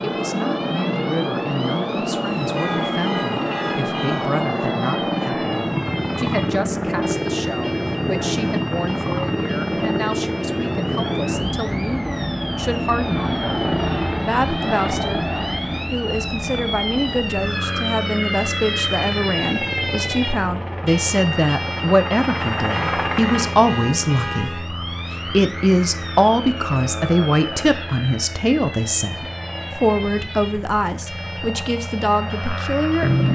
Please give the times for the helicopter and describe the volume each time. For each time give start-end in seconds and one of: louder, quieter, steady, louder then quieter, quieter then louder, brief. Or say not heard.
0.0-33.3 quieter.